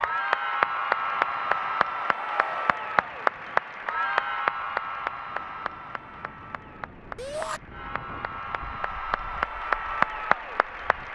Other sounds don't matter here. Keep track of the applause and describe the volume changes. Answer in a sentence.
The volume of the applause goes down, then up.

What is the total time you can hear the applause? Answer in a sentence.
The applause can be heard for 11 seconds in total.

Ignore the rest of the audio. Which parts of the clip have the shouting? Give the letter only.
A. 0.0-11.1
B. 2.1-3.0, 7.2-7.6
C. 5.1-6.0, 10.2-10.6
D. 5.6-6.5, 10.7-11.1
B.